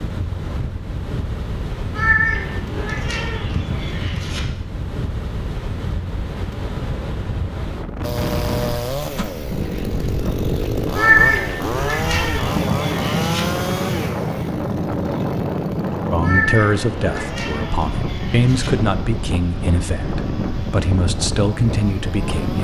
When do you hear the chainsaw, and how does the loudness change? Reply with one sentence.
The chainsaw can be heard from 8.0 to 22.5 s, getting quieter.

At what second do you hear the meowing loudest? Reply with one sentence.
The loudest moment of the meowing is at 11 seconds.